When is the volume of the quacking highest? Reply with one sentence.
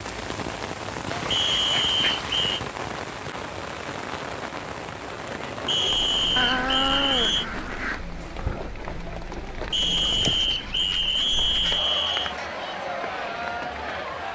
The loudest moment of the quacking is at 7 seconds.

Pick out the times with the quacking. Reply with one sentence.
The quacking can be heard from 1.1 to 2.6 s, from 6.3 to 8.0 s and from 10.1 to 12.5 s.